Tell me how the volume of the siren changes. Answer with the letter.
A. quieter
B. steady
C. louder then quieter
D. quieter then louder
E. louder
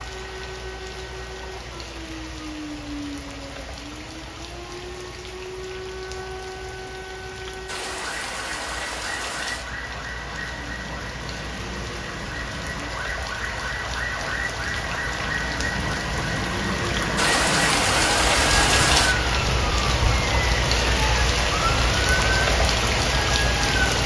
E.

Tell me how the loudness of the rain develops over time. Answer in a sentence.
The loudness of the rain goes up.